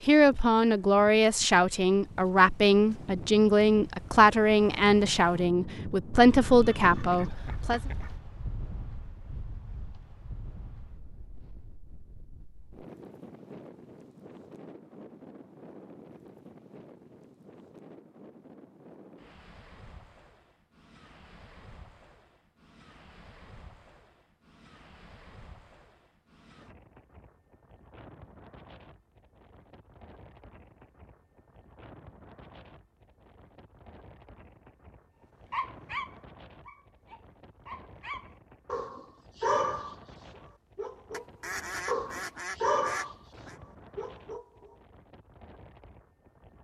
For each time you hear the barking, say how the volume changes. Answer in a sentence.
You can hear the barking from 35.5 to 40.0 s, getting quieter then louder; briefly from 40.8 to 43.1 s; and briefly from 44.0 to 44.5 s.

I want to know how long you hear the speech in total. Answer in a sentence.
The speech can be heard for 8 seconds in total.